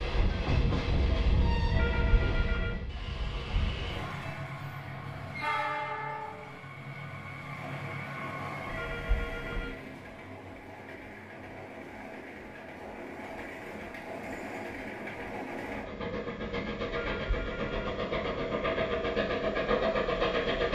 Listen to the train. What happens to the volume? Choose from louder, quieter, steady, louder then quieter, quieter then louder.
quieter then louder.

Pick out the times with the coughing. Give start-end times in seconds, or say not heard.
not heard.